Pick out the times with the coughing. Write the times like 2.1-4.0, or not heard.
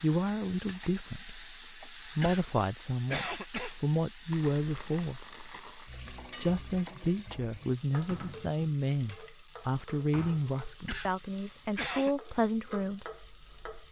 2.2-3.8, 10.8-12.2.